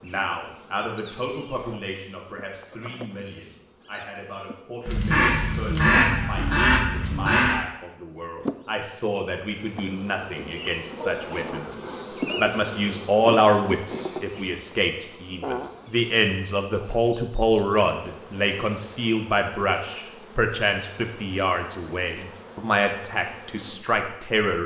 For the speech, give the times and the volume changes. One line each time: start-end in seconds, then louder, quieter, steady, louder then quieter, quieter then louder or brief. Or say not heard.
0.0-24.6 louder.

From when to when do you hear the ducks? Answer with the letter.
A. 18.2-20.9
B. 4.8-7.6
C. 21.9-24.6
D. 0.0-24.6
B.